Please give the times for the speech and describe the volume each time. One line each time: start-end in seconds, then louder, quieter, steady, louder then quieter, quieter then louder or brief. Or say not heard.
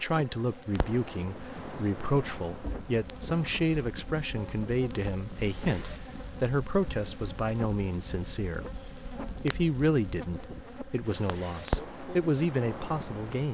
0.0-13.4 steady.